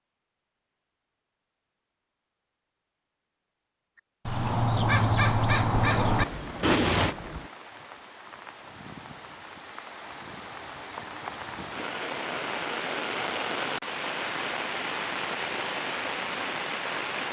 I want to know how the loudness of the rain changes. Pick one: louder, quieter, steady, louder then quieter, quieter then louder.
louder.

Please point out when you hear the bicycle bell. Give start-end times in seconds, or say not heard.
not heard.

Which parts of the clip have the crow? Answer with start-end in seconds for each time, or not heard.
4.2-7.2.